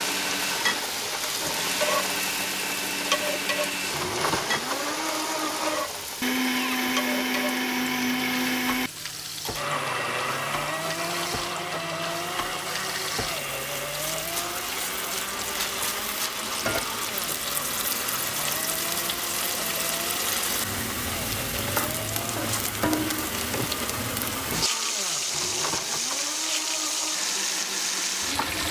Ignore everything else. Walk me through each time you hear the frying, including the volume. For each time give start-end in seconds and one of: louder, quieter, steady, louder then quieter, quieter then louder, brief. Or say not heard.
0.0-28.6 quieter then louder.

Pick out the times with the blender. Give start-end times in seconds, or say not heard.
0.0-28.6.